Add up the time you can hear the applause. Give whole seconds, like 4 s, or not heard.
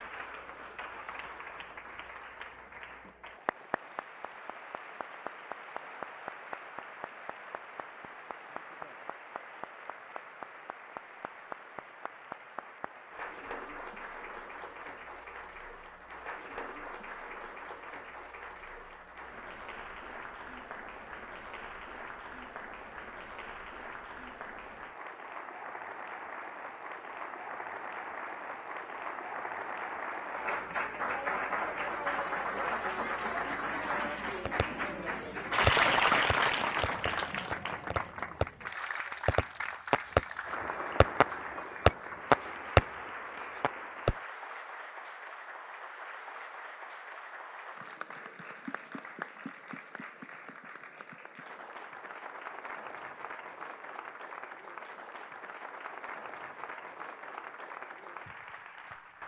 59 s.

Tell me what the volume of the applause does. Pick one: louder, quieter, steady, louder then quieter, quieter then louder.
louder then quieter.